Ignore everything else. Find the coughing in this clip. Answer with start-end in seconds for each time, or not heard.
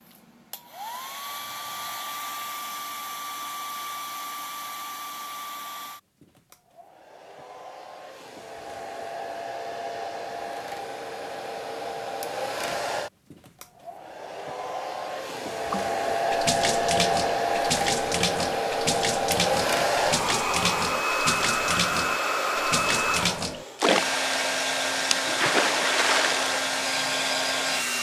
not heard.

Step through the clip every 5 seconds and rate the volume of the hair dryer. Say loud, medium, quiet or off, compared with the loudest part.
medium, quiet, medium, loud, loud, loud.